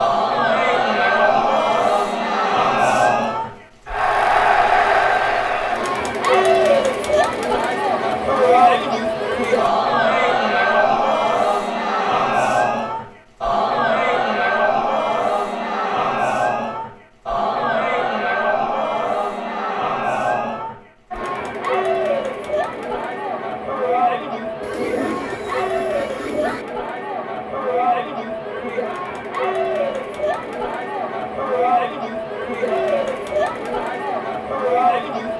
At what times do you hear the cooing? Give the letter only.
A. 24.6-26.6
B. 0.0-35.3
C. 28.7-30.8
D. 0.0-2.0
A.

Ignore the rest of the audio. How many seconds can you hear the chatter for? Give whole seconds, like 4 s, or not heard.
35 s.